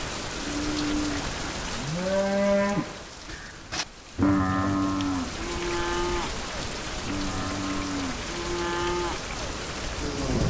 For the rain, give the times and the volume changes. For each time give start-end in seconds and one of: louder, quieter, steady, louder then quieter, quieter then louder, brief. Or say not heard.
0.0-10.4 quieter then louder.